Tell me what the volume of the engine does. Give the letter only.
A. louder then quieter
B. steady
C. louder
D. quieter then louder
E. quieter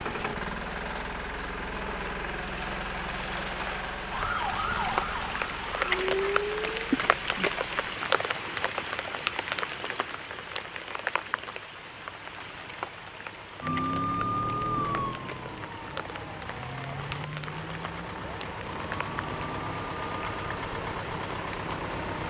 D.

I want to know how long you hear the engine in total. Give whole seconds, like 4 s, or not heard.
22 s.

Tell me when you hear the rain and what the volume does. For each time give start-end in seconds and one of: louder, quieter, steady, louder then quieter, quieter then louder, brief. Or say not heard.
0.0-22.2 louder then quieter.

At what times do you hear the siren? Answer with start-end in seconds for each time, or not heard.
4.1-6.7, 13.6-20.4.